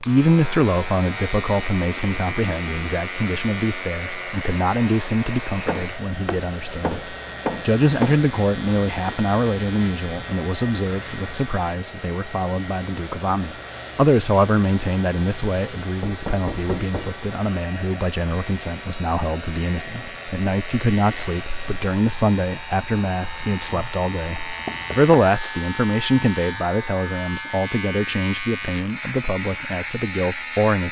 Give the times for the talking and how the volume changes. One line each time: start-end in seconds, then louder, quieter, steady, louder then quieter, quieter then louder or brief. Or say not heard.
0.0-30.8 steady.